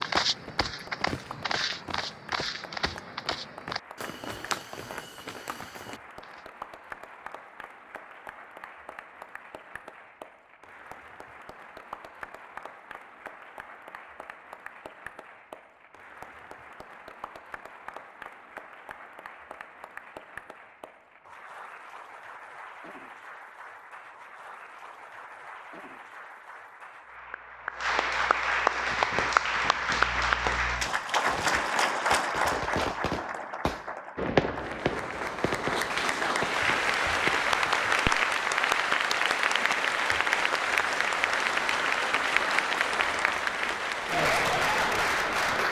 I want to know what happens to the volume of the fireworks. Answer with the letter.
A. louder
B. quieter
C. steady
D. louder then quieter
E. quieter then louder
D.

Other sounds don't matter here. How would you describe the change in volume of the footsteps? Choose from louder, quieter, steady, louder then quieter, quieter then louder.
quieter.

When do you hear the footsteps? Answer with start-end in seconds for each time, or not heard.
0.0-6.5.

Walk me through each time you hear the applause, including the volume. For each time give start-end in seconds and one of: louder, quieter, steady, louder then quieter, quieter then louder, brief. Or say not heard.
0.1-45.6 louder.